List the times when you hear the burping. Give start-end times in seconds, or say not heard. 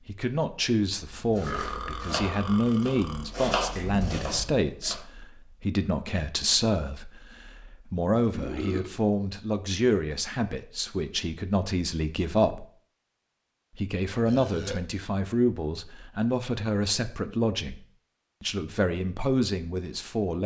1.4-3.3, 8.3-8.9, 14.2-14.8.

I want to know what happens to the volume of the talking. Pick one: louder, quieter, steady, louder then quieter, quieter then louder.
steady.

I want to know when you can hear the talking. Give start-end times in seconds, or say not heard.
0.1-12.7, 13.8-20.4.